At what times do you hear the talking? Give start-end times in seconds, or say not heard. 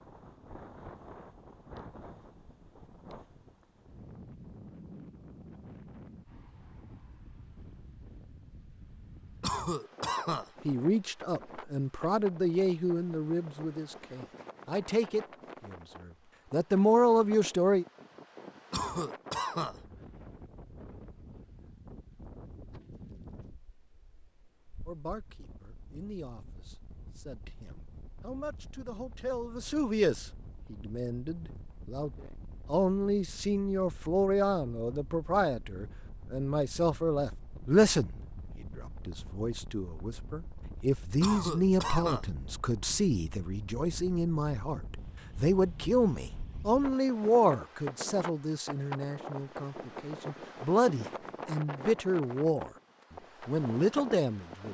10.7-17.9, 24.9-52.7, 53.5-54.7.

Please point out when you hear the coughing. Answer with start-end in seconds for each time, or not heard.
9.4-10.5, 18.7-19.8, 41.2-42.2.